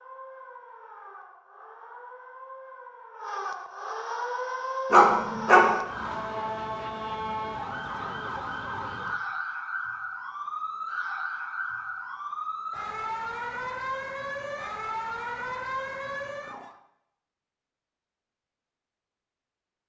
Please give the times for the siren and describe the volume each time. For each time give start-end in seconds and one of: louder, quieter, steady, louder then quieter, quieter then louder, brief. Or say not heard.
0.0-16.8 louder.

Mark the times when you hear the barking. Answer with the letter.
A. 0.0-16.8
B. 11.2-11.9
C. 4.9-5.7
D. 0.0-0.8
C.